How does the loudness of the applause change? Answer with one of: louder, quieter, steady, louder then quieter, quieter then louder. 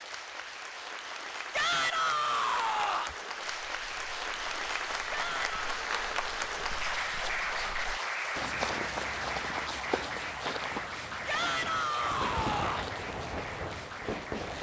louder then quieter.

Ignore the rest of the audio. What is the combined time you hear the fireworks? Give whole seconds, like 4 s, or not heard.
3 s.